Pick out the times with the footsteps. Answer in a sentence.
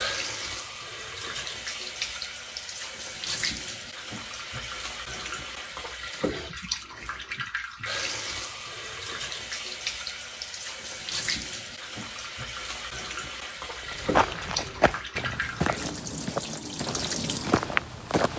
The footsteps can be heard from 13.9 to 18.3 s.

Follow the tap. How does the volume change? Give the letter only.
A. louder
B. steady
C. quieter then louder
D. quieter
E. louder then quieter
B.